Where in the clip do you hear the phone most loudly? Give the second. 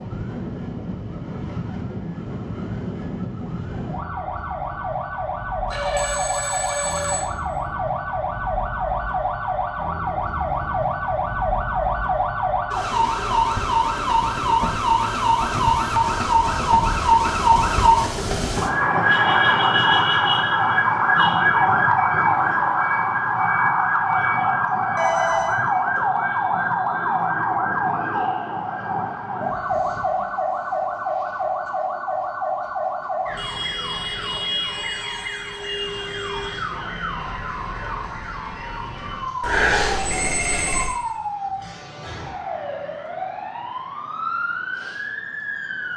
40 s.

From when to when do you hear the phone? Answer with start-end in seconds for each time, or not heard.
5.7-7.2, 24.9-25.6, 39.4-40.9.